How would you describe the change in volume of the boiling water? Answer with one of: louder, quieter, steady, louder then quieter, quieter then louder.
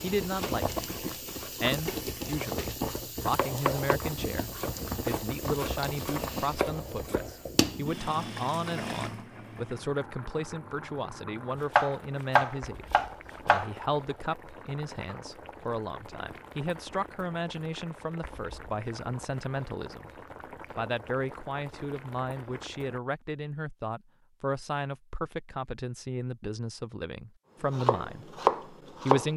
quieter.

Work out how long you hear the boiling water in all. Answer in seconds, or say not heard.
23 s.